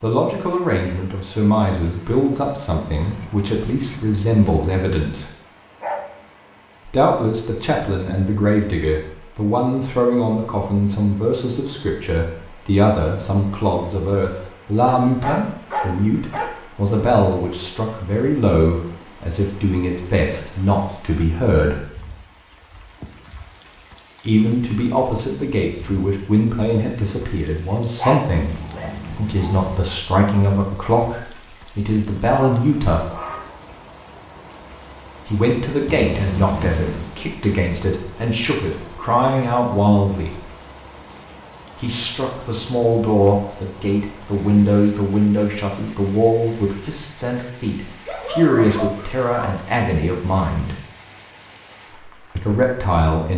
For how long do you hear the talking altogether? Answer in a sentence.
The talking can be heard for 44 seconds in total.